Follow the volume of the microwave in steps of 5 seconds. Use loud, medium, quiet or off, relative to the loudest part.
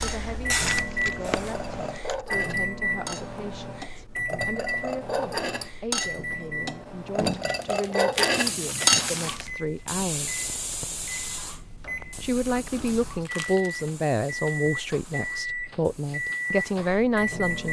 loud, medium, medium, loud.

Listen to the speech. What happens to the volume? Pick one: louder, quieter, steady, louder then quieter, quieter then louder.
louder.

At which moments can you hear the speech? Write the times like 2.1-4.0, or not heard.
0.0-10.4, 12.2-17.6.